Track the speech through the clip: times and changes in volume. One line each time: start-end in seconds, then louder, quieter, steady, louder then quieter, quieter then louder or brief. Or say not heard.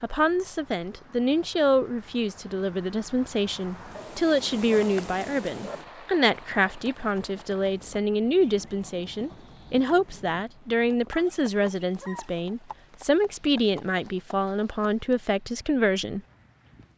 0.0-16.2 steady.